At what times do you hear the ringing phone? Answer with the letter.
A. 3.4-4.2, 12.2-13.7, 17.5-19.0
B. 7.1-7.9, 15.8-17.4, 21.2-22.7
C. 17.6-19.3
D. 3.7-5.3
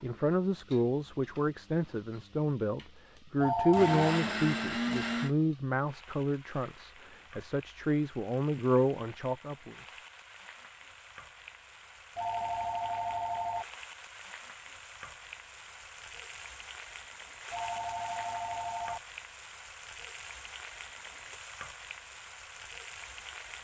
A.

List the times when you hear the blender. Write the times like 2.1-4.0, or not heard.
3.7-5.3.